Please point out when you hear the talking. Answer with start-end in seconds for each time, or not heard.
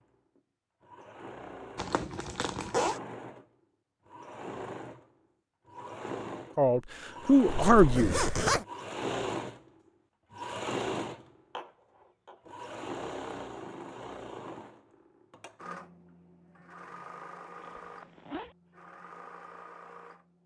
6.5-8.2.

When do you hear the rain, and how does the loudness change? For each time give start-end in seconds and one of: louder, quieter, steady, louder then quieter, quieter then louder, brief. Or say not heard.
not heard.